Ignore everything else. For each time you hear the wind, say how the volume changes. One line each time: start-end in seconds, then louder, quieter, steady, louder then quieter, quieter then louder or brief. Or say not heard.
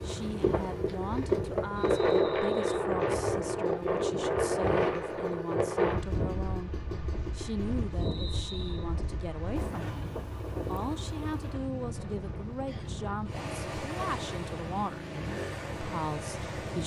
0.0-16.8 quieter.